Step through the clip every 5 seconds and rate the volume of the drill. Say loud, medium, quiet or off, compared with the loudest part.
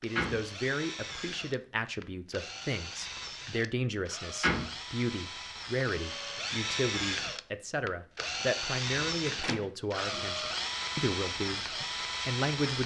medium, loud, loud.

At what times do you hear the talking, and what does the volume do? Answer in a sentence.
You can hear the talking from 0.0 to 11.7 s, at a steady volume; and briefly from 12.2 to 12.8 s.